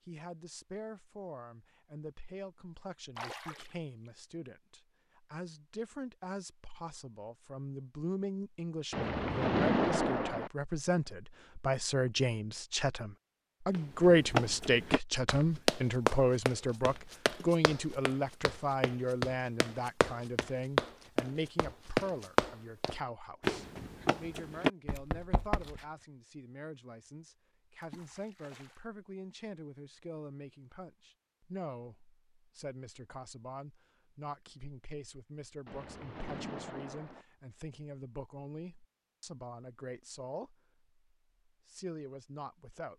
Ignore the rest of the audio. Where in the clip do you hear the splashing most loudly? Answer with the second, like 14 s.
10 s.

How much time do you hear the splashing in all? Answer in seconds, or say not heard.
6 s.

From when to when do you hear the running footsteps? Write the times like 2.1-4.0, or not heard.
13.7-25.9.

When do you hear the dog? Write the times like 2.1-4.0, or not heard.
not heard.